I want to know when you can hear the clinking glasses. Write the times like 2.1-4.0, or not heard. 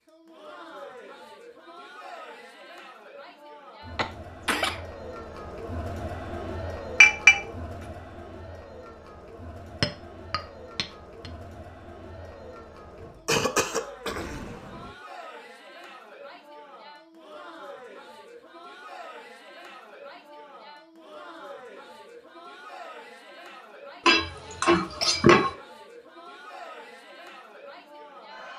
7.0-7.8, 9.8-10.8, 24.1-25.6.